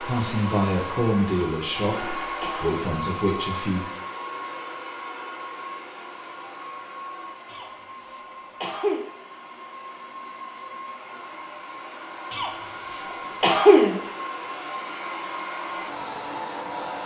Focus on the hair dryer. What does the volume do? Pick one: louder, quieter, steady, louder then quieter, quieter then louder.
quieter then louder.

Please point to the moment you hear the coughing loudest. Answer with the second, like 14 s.
14 s.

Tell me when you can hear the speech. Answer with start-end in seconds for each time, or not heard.
0.0-3.9.